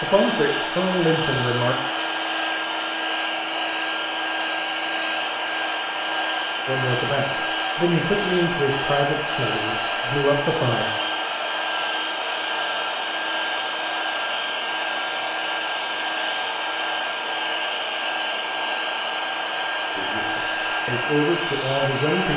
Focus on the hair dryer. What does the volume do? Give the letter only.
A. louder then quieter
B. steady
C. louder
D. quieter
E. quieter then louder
B.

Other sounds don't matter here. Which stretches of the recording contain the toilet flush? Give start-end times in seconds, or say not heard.
not heard.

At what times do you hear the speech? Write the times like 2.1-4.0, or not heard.
0.0-1.8, 6.7-10.8, 19.9-22.3.